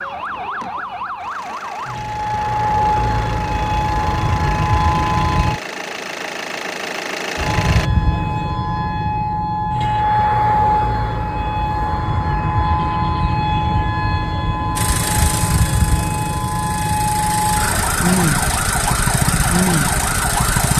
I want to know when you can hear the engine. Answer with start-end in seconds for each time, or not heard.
0.0-7.9, 14.8-20.7.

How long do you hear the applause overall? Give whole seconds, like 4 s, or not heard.
not heard.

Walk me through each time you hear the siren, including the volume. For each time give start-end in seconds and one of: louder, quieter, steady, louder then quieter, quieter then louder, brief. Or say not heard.
0.0-5.6 louder
7.3-20.7 steady.